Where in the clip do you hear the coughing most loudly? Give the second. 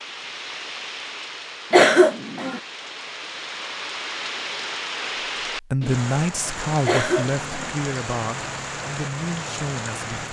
2 s.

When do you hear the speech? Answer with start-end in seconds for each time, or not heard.
5.5-10.2.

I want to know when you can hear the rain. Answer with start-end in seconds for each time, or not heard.
0.0-10.2.